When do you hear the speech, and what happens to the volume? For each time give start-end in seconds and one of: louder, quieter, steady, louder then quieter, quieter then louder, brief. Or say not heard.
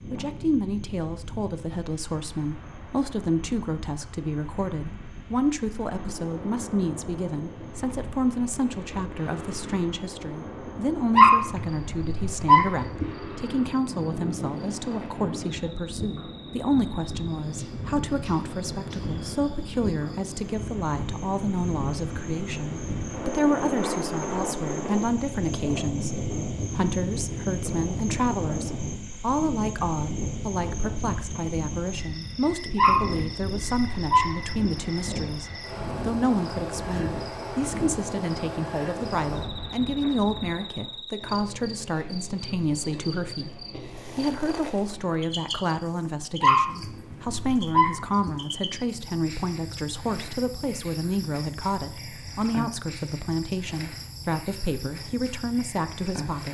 0.1-56.4 steady.